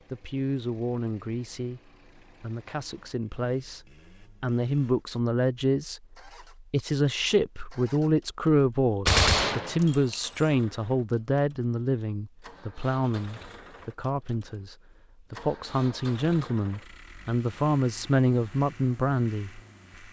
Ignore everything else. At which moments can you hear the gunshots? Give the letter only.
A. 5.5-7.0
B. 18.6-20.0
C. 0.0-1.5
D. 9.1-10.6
D.